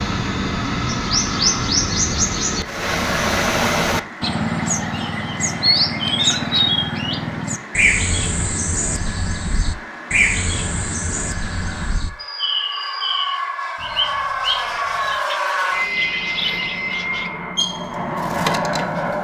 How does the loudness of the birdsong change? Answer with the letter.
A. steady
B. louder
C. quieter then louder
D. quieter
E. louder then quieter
D.